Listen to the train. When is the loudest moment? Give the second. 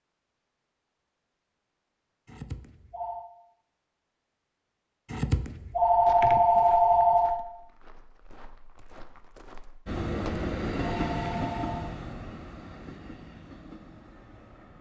11 s.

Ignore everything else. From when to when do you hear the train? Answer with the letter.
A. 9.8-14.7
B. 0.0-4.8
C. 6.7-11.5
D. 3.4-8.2
A.